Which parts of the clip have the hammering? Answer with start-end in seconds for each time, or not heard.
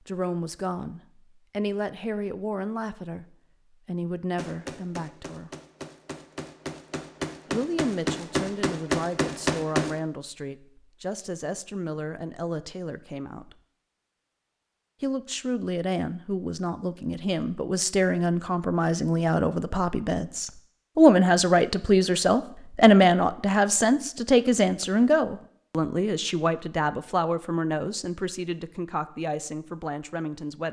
4.3-10.0.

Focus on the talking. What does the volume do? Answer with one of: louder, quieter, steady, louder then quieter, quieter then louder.
louder then quieter.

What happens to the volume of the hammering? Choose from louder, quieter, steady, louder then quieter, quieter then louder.
louder.